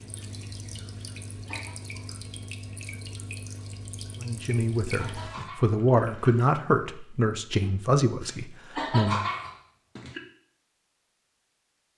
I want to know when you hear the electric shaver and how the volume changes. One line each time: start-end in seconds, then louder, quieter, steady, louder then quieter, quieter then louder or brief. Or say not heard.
not heard.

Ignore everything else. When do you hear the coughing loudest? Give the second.
9 s.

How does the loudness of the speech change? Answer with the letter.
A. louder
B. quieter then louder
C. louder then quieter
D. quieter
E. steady
C.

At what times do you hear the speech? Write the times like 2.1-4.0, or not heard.
4.2-9.3.